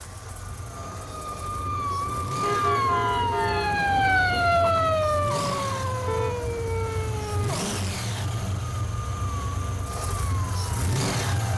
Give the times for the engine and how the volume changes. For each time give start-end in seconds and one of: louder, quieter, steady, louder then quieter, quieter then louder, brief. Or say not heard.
0.0-11.5 louder.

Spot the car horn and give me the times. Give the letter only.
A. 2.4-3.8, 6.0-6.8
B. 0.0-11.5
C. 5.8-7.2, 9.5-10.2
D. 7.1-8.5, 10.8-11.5
A.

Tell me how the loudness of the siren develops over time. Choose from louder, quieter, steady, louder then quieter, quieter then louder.
louder then quieter.